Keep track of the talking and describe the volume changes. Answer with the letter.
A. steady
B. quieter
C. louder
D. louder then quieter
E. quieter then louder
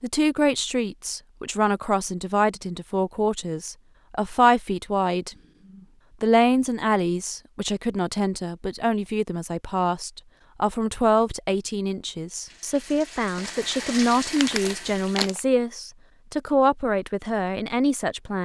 A.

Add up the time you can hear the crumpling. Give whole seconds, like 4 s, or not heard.
2 s.